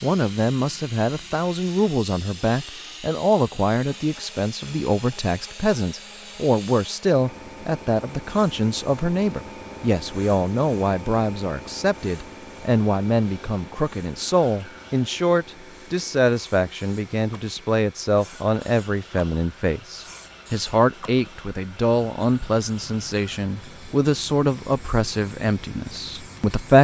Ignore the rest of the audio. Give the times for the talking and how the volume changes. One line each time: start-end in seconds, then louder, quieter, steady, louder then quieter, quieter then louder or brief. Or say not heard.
0.0-26.7 steady.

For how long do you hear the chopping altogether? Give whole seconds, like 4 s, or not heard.
not heard.